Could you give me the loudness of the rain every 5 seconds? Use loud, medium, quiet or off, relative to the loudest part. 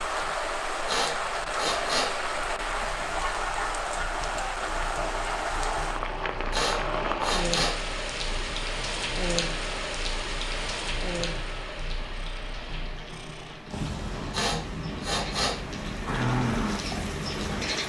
loud, loud, medium, loud.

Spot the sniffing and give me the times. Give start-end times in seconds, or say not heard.
0.8-2.1, 6.5-7.8, 14.3-15.6.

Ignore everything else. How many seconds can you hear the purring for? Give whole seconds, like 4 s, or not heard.
18 s.